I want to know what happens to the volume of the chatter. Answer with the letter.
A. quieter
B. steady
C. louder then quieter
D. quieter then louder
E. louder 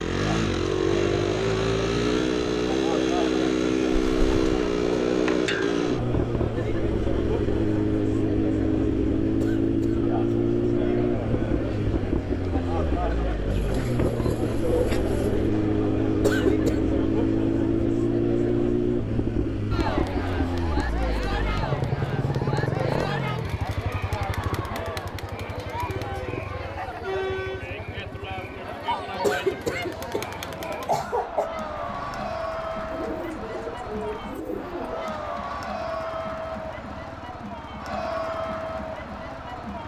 B.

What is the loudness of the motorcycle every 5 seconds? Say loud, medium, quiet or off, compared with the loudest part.
loud, loud, loud, loud, medium, quiet, quiet, quiet.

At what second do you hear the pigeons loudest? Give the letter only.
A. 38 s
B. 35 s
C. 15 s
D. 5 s
C.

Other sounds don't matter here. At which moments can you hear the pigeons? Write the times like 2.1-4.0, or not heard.
4.1-5.8, 13.5-15.5, 32.9-35.1.